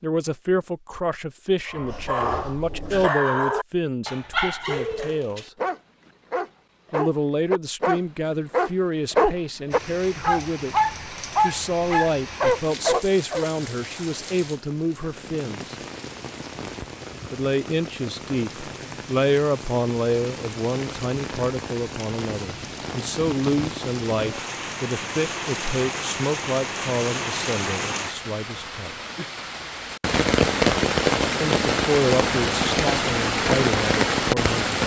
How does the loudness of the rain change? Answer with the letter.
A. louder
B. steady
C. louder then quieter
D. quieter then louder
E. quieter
A.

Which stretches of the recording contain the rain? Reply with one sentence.
The rain can be heard from 9.7 to 34.8 s.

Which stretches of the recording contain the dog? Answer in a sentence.
You can hear the dog from 1.7 to 13.4 s.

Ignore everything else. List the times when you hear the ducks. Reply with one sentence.
You can't hear the ducks here.